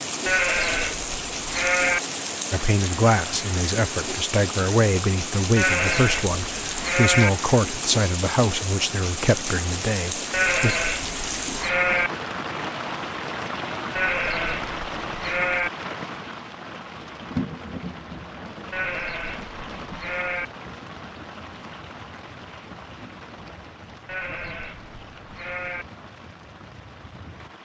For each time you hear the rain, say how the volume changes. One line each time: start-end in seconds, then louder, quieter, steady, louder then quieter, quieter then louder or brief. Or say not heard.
0.0-27.5 quieter.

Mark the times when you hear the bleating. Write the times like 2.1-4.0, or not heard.
0.2-2.0, 5.5-7.3, 10.3-12.1, 13.9-15.7, 18.7-20.5, 24.1-25.9.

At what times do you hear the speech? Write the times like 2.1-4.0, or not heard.
2.5-10.8.